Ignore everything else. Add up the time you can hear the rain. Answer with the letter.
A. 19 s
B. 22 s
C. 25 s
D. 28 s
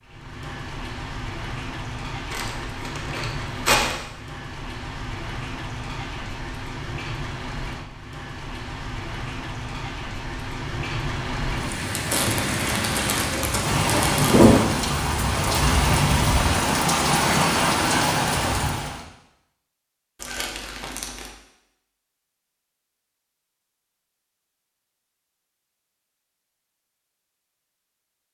A.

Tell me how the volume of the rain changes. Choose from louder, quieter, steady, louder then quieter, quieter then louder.
louder.